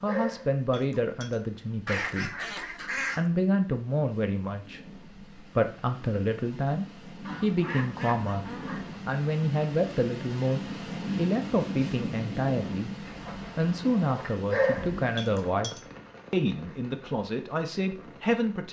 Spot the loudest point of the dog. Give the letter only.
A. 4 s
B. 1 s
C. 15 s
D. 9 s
C.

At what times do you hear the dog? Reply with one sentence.
The dog can be heard from 0.1 to 1.4 s and from 14.5 to 15.8 s.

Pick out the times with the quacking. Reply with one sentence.
The quacking can be heard from 1.9 to 3.2 s, from 7.2 to 9.0 s and from 13.0 to 15.0 s.